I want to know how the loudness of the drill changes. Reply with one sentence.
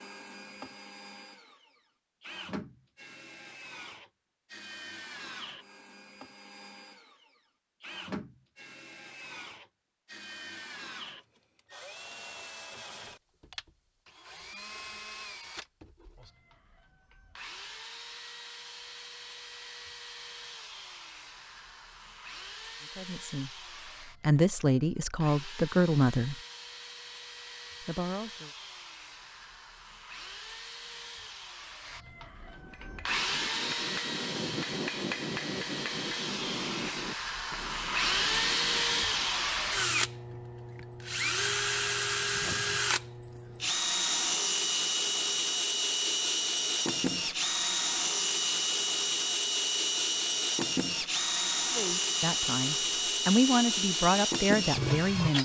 The loudness of the drill goes up.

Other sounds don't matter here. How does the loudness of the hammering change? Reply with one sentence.
The volume of the hammering goes up, then down.